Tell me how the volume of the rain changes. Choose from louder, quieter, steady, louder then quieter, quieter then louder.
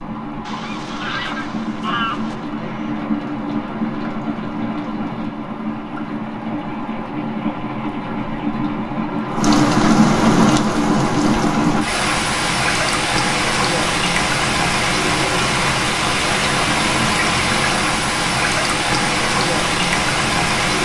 louder.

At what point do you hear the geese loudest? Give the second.
2 s.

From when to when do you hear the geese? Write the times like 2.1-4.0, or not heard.
0.5-2.5.